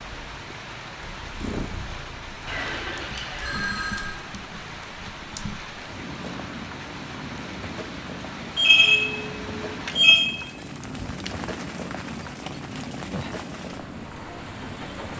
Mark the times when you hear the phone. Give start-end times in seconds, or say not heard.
2.5-4.2, 8.6-10.2.